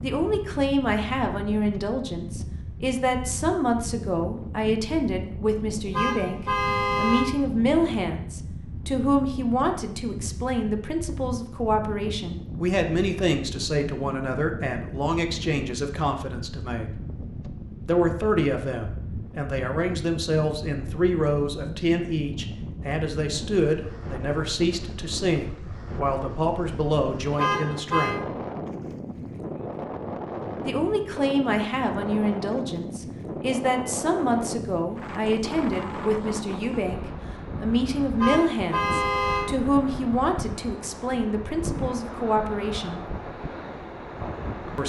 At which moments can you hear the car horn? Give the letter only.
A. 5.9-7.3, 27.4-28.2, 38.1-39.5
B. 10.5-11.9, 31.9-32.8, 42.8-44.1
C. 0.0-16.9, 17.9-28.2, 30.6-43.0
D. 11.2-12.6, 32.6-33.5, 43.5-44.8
A.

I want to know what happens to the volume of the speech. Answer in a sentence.
The volume of the speech stays about the same.